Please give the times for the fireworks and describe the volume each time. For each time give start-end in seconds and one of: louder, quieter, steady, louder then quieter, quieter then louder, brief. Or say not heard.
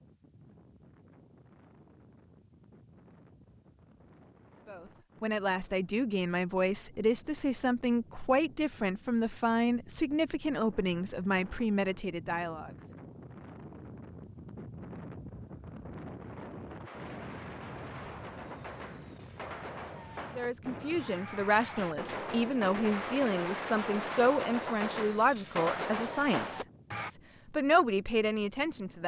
16.9-27.1 louder.